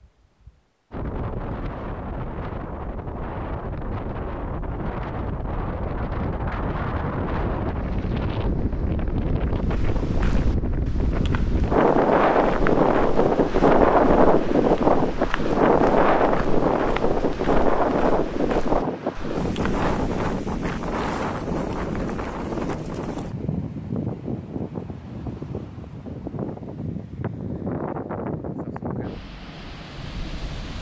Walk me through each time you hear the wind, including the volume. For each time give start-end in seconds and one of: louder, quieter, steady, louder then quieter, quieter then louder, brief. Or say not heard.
0.0-30.7 louder then quieter.